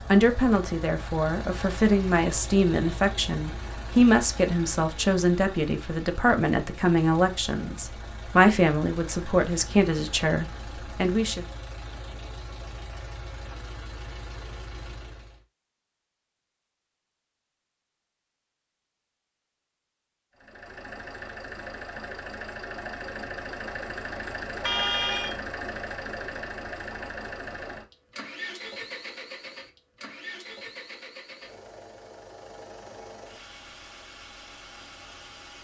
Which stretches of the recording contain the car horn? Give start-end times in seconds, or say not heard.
24.6-25.4.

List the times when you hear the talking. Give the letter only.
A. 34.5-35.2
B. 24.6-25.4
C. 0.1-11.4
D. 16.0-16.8
C.